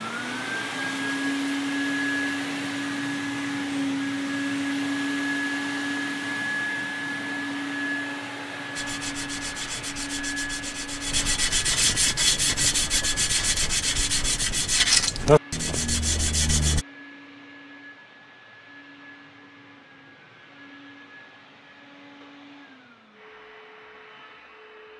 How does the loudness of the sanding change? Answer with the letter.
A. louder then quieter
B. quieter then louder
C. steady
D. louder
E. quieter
D.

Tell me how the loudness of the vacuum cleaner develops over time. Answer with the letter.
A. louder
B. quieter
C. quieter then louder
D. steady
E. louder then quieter
B.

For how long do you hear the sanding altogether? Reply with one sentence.
You can hear the sanding for 8 seconds altogether.